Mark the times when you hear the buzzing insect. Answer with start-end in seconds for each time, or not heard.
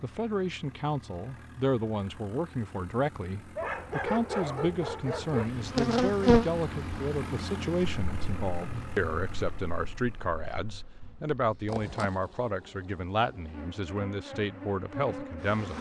5.2-15.7.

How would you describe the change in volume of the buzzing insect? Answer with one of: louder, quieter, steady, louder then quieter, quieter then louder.
quieter then louder.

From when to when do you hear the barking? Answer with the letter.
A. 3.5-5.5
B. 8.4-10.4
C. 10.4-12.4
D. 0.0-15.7
A.